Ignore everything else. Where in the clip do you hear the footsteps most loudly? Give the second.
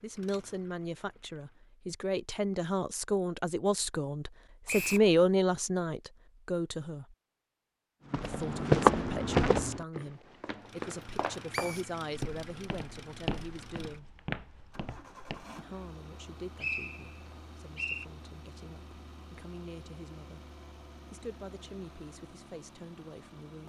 9 s.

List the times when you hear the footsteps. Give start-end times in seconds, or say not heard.
8.1-15.4.